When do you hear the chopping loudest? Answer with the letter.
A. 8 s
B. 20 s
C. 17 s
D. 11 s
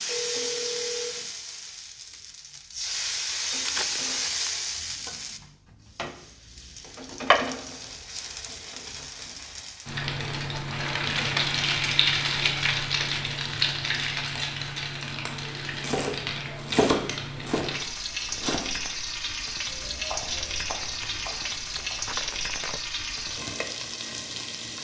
C.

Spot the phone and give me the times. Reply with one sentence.
The phone can be heard from 0.1 to 1.3 s.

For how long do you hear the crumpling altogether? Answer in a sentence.
You can hear the crumpling for 3 seconds altogether.